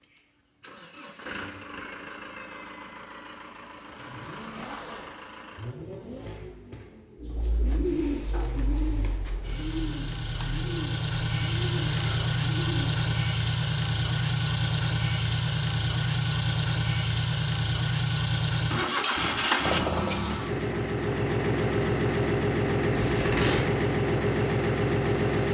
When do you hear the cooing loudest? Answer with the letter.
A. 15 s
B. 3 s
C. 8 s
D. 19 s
C.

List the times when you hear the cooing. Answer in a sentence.
The cooing can be heard from 7.2 to 13.1 s.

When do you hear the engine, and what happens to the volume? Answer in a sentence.
You can hear the engine from 0.0 to 25.4 s, getting louder.